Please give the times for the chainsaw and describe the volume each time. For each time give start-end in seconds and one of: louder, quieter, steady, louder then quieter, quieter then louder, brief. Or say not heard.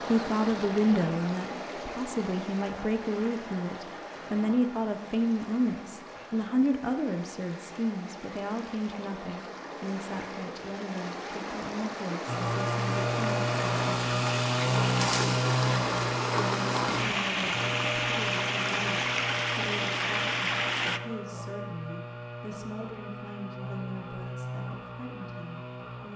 12.2-26.1 quieter.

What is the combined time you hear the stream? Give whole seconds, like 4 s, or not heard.
21 s.